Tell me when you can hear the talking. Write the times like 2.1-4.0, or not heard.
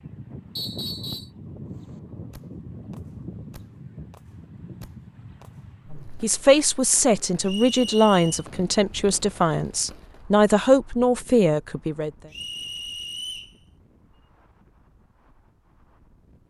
6.2-12.1.